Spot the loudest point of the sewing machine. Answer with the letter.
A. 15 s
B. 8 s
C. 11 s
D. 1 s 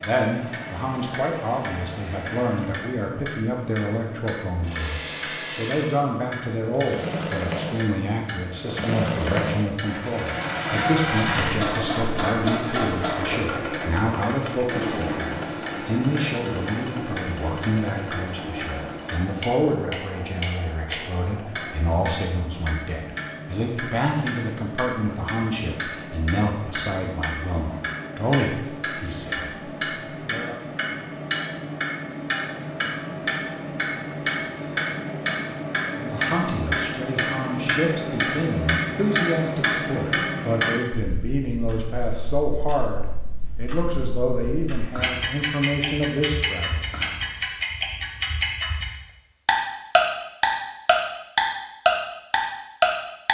C.